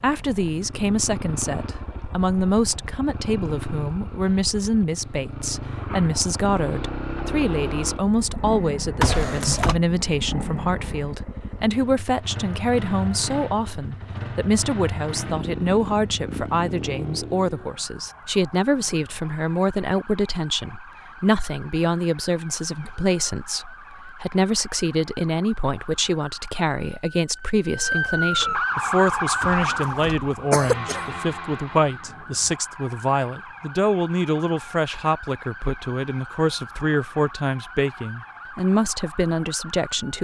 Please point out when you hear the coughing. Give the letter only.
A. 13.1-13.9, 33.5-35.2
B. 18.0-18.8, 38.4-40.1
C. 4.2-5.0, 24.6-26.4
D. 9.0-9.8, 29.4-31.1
D.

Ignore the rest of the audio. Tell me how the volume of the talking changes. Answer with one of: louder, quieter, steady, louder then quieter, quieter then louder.
steady.